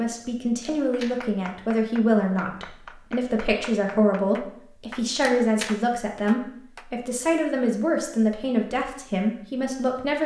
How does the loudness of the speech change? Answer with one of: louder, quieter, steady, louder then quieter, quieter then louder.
steady.